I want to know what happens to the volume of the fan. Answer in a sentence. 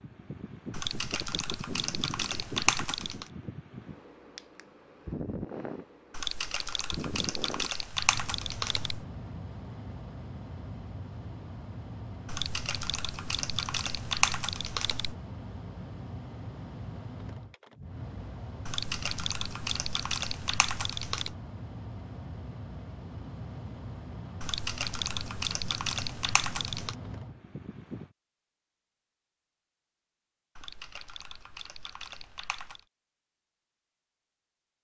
The volume of the fan stays about the same.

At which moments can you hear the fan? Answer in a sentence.
You can hear the fan from 0.0 to 28.1 s.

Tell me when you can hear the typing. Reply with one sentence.
You can hear the typing from 0.7 to 3.3 s, from 6.1 to 9.1 s, from 12.2 to 15.2 s, from 18.6 to 21.4 s, from 24.4 to 26.9 s and from 30.6 to 32.9 s.